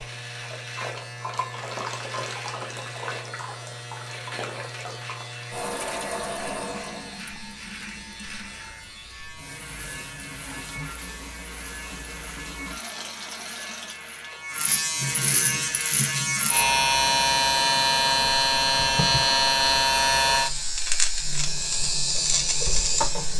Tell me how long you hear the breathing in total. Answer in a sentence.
You can't hear the breathing here.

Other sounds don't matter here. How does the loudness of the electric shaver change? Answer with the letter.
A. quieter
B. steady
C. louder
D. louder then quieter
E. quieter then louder
C.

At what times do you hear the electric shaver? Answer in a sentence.
The electric shaver can be heard from 0.0 to 23.3 s.